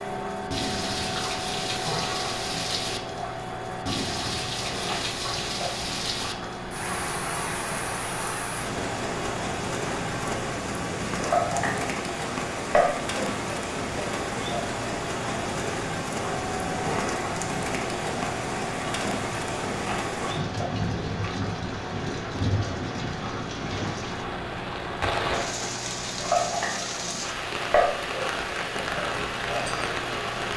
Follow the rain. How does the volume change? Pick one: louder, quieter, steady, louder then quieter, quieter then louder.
steady.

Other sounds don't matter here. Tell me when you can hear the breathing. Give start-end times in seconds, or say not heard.
not heard.